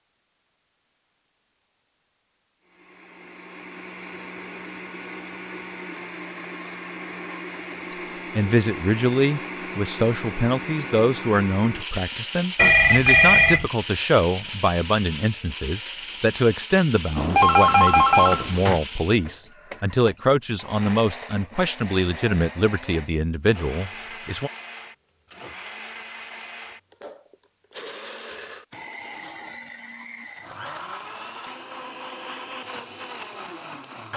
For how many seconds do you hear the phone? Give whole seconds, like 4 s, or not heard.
3 s.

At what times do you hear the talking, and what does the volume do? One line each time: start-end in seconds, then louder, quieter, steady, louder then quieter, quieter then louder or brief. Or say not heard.
7.9-24.5 steady.